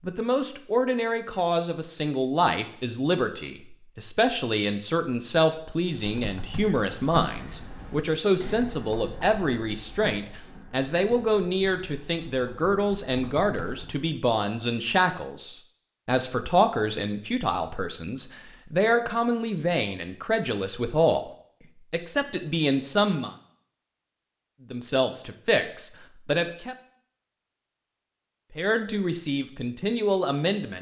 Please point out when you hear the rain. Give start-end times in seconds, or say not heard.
not heard.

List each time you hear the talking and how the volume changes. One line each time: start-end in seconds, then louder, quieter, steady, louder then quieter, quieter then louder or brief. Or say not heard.
0.1-21.3 steady
21.9-23.3 brief
24.7-26.8 brief
28.6-30.7 brief.